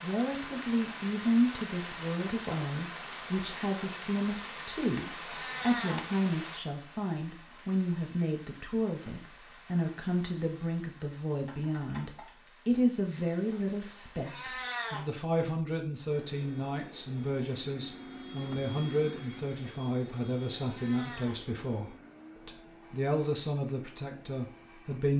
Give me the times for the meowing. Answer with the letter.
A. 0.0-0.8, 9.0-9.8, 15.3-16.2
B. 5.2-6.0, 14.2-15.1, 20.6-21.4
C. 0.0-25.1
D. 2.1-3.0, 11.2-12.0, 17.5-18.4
B.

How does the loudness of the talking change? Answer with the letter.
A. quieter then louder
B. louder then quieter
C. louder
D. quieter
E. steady
E.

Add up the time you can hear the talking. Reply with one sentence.
The talking can be heard for 25 seconds in total.